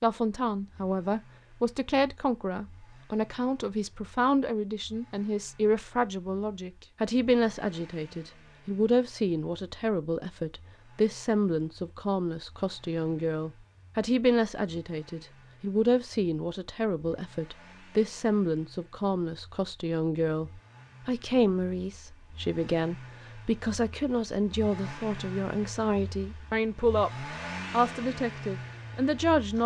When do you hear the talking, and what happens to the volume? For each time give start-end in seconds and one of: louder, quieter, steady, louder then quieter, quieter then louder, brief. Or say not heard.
0.0-29.6 steady.